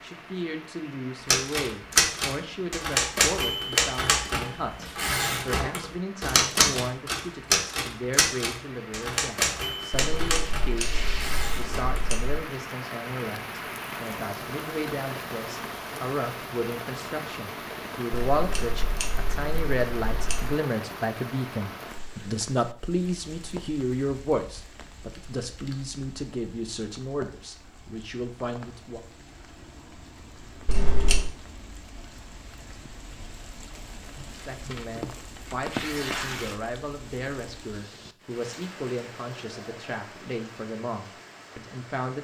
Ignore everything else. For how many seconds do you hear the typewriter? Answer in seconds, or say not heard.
11 s.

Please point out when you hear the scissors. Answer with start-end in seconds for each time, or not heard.
10.2-12.4, 18.3-20.6, 30.6-31.3.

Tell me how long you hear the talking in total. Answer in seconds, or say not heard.
37 s.